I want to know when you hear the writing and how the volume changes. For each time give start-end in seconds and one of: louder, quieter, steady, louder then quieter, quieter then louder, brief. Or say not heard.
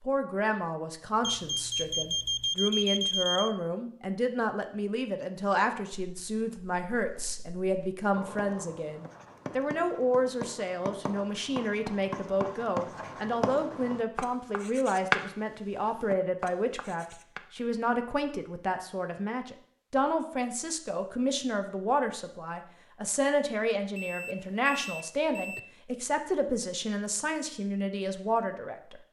5.7-17.4 louder.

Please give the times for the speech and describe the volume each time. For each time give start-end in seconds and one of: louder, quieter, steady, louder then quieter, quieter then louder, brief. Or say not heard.
0.0-29.0 steady.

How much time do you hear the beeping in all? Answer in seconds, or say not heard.
4 s.